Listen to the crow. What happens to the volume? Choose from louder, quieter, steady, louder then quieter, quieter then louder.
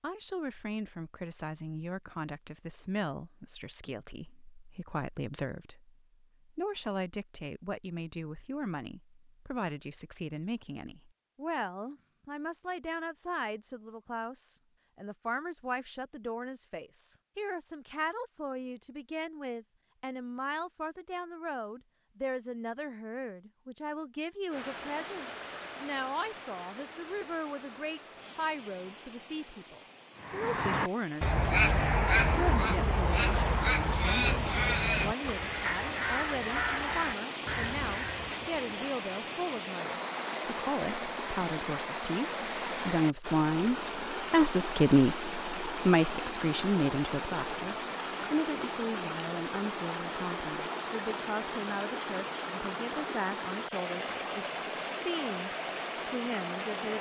quieter.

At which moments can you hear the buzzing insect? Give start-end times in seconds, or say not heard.
not heard.